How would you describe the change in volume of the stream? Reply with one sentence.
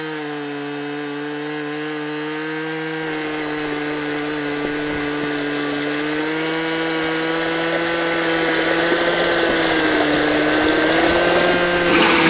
The volume of the stream goes up.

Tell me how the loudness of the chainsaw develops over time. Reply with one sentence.
The volume of the chainsaw goes up.